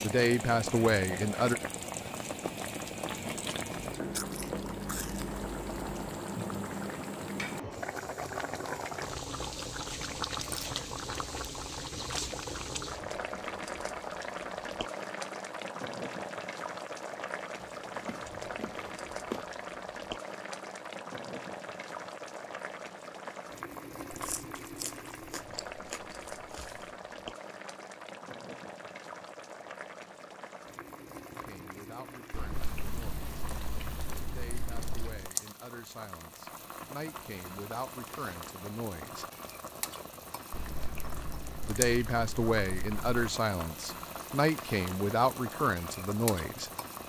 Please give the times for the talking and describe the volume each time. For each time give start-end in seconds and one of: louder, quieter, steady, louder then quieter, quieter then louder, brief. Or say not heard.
0.0-1.6 brief
31.4-33.2 brief
34.2-39.2 louder
41.6-46.7 steady.